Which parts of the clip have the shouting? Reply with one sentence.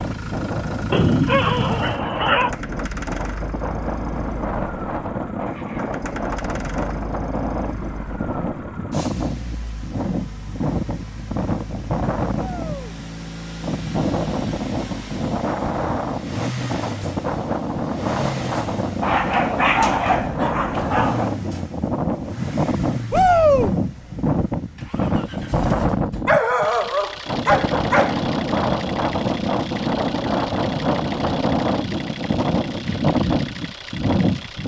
The shouting can be heard from 12.3 to 12.9 s and from 23.1 to 23.7 s.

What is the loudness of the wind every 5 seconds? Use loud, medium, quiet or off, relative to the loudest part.
medium, medium, loud, loud, loud, loud, loud.